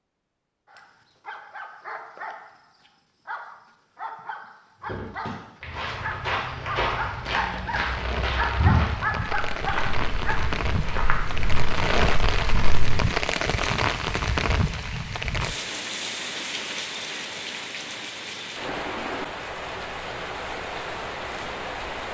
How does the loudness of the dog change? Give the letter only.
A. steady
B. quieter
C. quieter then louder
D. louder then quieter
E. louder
E.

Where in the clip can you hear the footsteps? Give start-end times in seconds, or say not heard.
4.8-13.1.